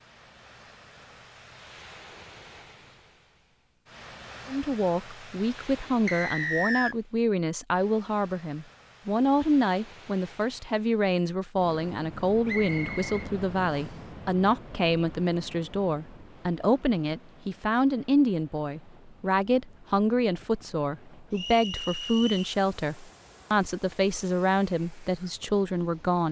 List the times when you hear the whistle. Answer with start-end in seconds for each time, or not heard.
6.0-7.0, 12.4-13.9, 21.3-22.6.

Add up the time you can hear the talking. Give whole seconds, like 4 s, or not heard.
22 s.